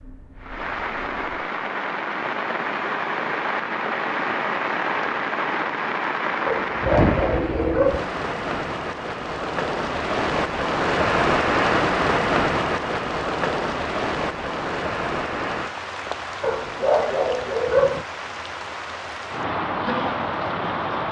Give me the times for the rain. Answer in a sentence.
The rain can be heard from 0.0 to 21.0 s.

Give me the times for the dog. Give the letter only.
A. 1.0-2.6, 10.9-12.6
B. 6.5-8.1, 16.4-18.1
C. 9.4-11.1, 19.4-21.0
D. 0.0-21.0
B.